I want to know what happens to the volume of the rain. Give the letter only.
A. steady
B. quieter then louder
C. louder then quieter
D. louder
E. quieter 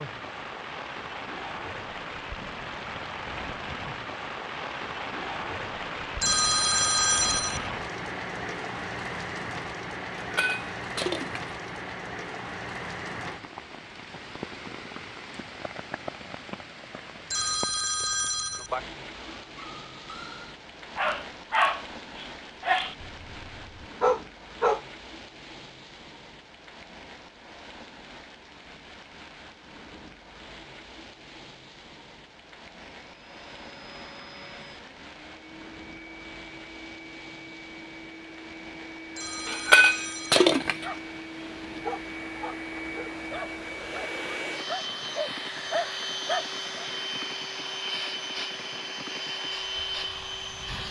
E.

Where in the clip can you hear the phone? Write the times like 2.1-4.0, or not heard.
6.2-7.7, 17.3-18.8, 39.1-40.5.